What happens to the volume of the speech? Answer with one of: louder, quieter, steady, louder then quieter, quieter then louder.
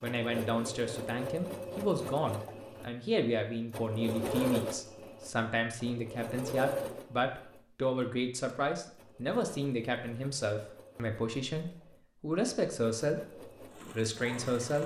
steady.